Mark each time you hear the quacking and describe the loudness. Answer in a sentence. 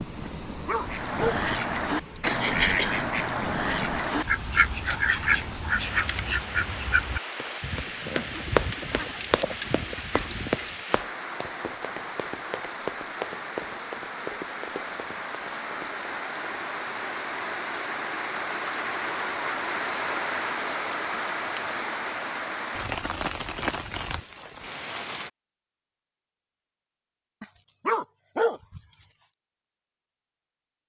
The quacking can be heard from 0.8 to 10.7 s, getting quieter.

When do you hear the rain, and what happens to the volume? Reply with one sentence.
You can hear the rain from 0.0 to 25.3 s, getting louder.